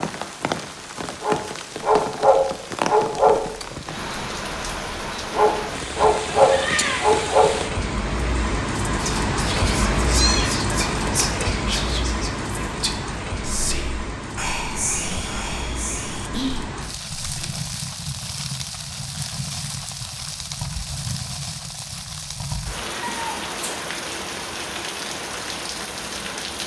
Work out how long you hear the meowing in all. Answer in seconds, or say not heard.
2 s.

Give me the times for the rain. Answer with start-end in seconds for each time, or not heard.
0.0-26.6.